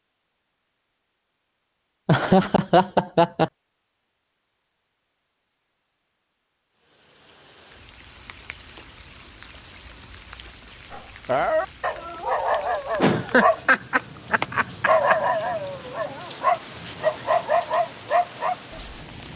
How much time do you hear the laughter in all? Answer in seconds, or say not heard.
4 s.